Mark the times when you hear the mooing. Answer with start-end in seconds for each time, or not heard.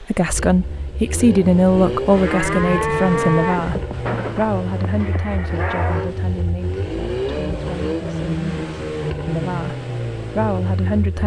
2.1-6.1.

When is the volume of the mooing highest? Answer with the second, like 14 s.
3 s.